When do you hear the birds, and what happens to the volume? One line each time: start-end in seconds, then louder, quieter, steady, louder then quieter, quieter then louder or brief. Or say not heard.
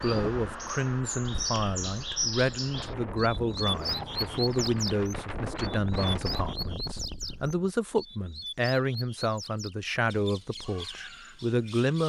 0.0-12.0 quieter.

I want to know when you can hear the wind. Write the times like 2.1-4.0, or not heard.
0.0-7.6.